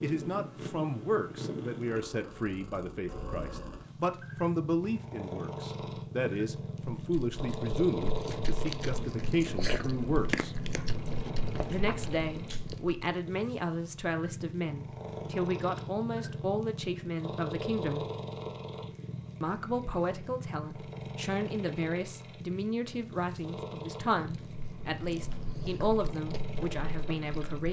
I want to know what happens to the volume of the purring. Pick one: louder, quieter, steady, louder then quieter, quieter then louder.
steady.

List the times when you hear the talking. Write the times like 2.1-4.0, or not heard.
0.0-10.6, 11.7-18.1, 19.4-27.6.